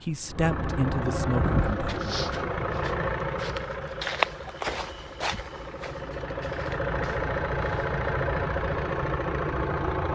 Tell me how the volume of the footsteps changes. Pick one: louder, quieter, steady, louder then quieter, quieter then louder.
louder then quieter.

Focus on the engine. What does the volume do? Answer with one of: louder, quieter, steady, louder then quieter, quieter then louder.
quieter then louder.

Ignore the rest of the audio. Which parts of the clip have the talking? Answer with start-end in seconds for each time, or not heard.
0.1-2.1.